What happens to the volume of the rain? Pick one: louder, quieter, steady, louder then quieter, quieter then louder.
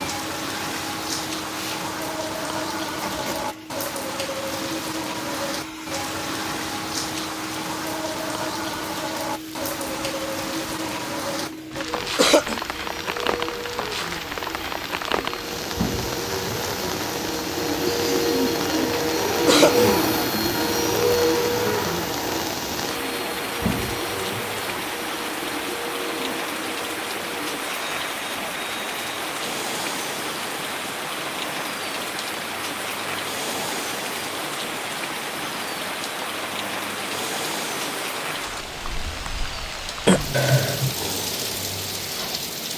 steady.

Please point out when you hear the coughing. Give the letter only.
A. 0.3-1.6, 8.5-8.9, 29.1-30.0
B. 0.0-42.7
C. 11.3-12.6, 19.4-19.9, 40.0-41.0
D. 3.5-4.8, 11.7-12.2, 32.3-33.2
C.